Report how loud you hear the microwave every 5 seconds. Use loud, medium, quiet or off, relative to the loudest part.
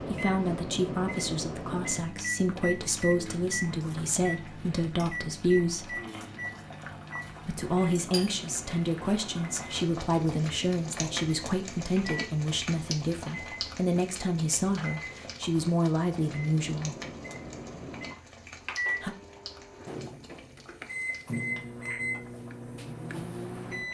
loud, medium, medium, loud, loud.